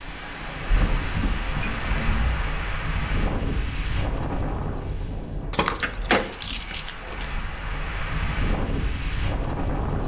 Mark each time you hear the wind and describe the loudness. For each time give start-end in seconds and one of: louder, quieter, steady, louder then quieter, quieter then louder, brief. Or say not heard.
0.0-10.0 quieter then louder.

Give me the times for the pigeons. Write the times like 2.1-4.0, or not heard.
not heard.